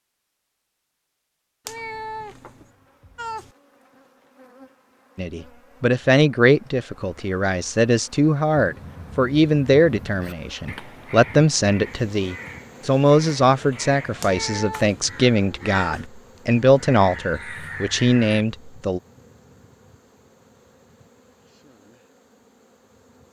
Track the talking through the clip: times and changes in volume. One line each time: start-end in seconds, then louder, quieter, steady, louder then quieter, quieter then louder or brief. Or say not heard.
5.2-19.0 steady.